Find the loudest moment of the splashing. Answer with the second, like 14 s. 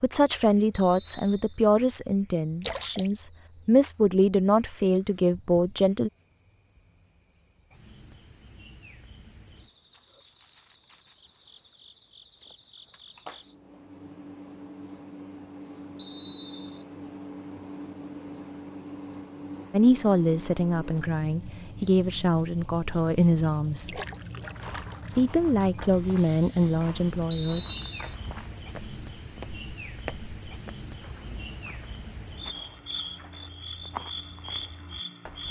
3 s.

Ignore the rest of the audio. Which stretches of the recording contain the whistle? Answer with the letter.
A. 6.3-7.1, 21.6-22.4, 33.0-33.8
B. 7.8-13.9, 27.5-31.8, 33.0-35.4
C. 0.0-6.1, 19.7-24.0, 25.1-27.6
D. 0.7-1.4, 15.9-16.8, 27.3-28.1
D.